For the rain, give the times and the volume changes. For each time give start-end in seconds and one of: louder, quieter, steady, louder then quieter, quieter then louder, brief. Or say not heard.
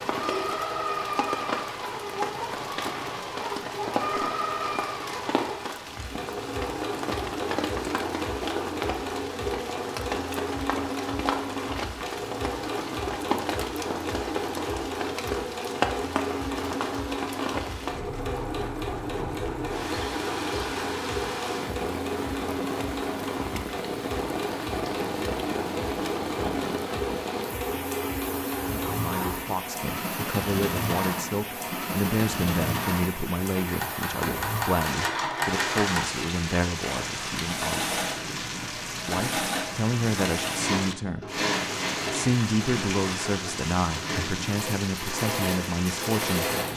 0.0-46.7 steady.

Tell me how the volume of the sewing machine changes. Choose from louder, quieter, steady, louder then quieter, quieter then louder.
steady.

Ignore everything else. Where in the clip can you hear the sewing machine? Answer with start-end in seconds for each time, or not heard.
0.0-46.7.